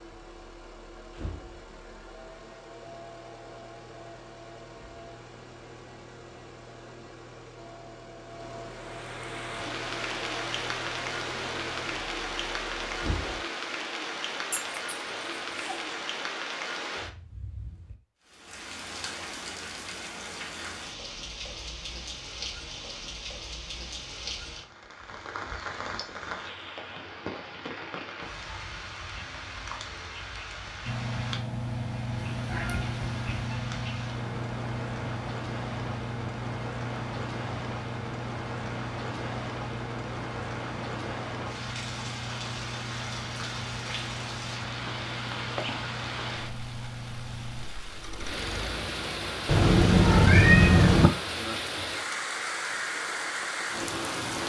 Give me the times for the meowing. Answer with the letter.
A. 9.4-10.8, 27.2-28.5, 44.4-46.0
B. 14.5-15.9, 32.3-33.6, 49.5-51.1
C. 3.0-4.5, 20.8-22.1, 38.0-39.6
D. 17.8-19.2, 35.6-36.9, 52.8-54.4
B.